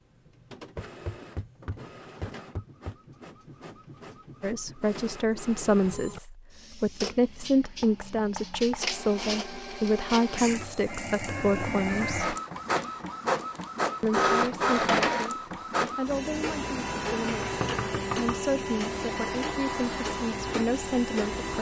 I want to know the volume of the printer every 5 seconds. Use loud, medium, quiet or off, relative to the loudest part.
quiet, medium, loud, loud, loud.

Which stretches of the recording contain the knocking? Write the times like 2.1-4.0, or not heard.
0.8-3.0, 7.6-8.8, 17.2-18.4.